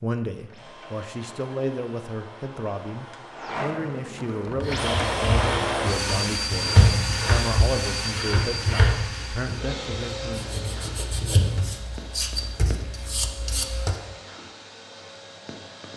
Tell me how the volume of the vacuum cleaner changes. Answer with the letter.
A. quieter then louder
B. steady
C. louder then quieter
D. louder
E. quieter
C.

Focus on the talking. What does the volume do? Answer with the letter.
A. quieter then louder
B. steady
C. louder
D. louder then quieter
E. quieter
B.